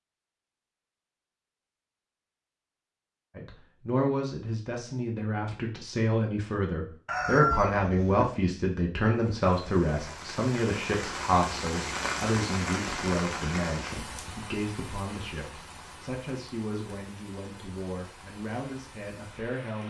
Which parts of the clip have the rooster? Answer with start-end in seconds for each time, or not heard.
7.0-8.3.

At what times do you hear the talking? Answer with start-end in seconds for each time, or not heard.
3.4-19.8.